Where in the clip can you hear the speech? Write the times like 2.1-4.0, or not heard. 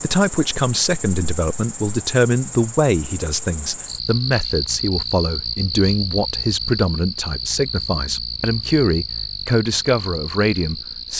0.0-11.1.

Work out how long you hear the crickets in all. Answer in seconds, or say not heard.
11 s.